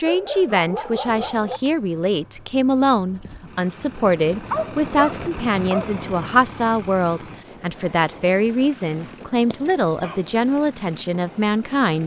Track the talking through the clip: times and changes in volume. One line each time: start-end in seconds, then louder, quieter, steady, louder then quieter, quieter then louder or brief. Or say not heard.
0.0-12.0 steady.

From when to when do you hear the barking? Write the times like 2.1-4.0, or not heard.
0.0-1.6, 4.3-6.0, 9.1-10.2.